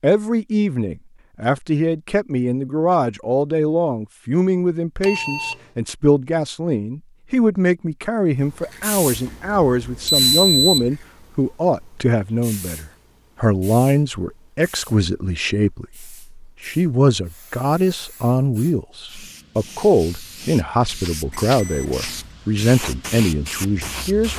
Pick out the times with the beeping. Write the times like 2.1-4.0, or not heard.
5.0-5.5, 9.1-10.9, 21.3-22.3.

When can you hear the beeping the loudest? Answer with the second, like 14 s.
10 s.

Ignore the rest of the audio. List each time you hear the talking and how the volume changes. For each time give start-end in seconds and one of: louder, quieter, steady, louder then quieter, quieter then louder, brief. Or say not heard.
0.0-24.3 steady.